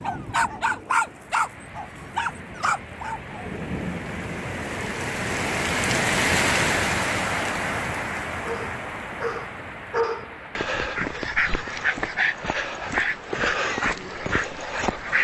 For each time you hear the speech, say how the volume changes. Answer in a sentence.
The speech can't be heard in this clip.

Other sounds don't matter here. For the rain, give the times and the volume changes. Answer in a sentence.
You can hear the rain from 0.0 to 15.2 s, getting louder then quieter.